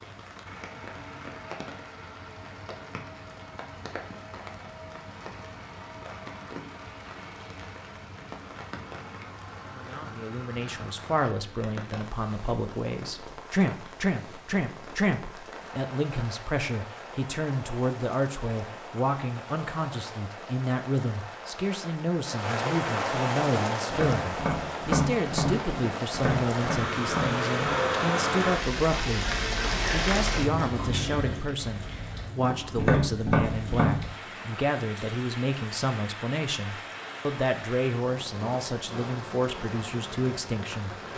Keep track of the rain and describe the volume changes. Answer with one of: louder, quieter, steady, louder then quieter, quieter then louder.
louder then quieter.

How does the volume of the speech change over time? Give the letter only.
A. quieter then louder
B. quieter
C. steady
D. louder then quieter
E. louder
C.